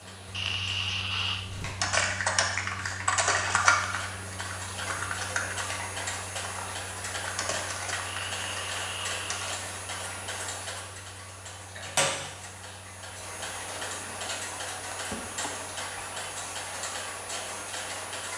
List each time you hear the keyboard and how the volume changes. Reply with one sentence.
The keyboard can be heard from 1.4 to 9.7 s, getting quieter.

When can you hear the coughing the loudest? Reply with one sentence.
The volume of the coughing peaks at 1 second.